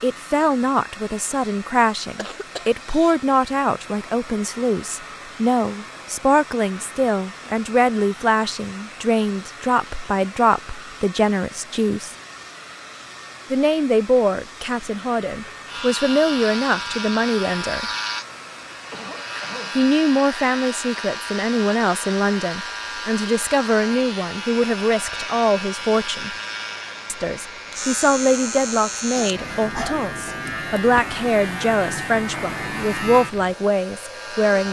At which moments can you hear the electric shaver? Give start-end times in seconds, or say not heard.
15.7-34.6.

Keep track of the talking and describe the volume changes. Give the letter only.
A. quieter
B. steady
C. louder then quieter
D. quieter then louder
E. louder
B.